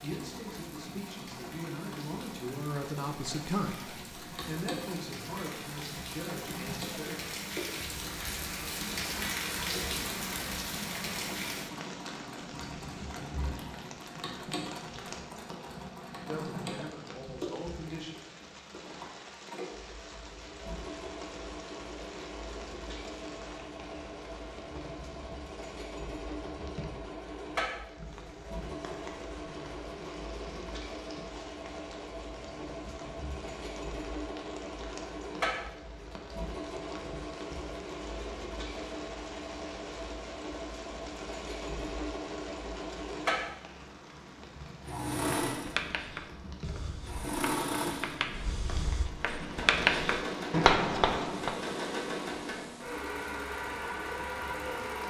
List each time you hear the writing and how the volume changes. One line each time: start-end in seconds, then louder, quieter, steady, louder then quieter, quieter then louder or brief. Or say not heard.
45.5-51.6 quieter then louder.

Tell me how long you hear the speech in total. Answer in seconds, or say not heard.
9 s.